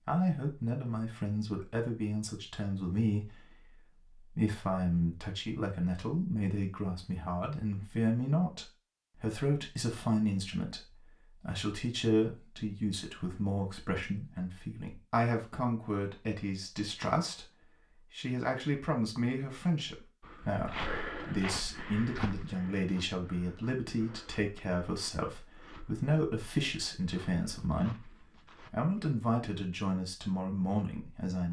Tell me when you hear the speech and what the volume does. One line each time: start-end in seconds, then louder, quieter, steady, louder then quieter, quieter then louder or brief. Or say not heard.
0.1-31.4 steady.